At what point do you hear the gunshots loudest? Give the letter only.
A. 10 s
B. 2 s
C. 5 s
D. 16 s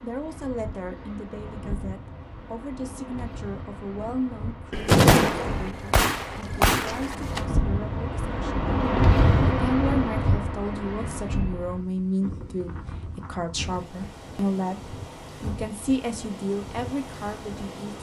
C.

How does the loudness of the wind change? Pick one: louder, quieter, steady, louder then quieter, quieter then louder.
louder then quieter.